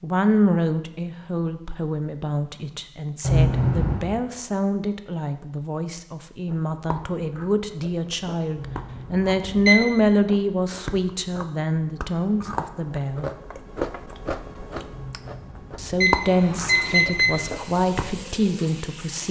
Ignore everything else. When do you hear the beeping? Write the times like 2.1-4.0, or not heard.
3.2-4.1, 8.6-10.1, 14.9-17.3.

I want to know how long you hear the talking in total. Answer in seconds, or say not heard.
17 s.